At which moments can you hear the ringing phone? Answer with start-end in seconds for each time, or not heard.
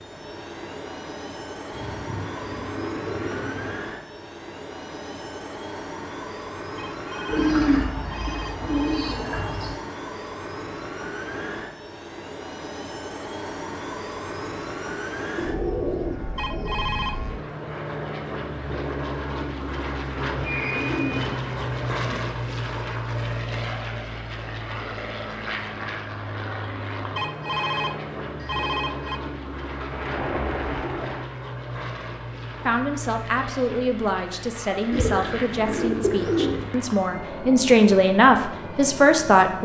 6.8-9.2, 16.4-17.2, 27.1-29.2.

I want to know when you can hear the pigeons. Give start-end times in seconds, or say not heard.
1.7-3.8, 7.2-9.8, 15.3-16.9, 20.3-22.2, 29.8-31.3, 34.9-36.7.